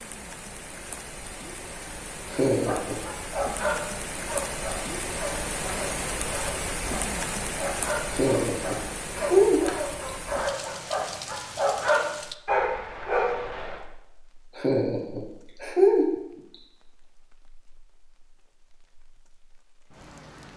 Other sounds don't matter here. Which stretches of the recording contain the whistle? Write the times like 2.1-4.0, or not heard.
not heard.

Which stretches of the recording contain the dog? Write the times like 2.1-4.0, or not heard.
2.5-13.8.